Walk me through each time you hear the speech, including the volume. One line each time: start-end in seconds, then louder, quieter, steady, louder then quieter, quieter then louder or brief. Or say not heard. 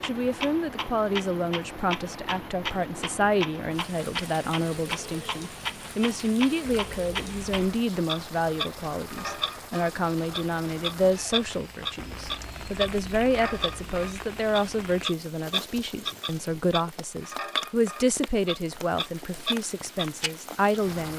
0.0-21.1 steady.